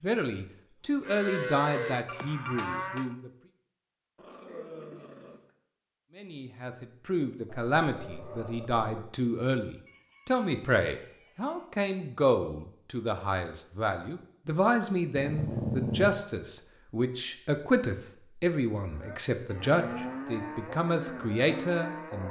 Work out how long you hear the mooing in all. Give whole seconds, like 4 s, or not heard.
6 s.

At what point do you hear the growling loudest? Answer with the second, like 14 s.
16 s.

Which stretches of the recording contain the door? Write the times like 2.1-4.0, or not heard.
not heard.